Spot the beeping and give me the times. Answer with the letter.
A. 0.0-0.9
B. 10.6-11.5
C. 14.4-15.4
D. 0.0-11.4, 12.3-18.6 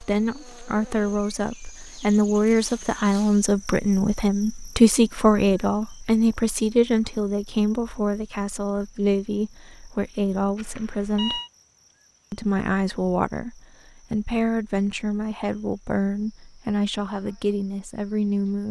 B.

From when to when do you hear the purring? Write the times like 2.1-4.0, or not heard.
not heard.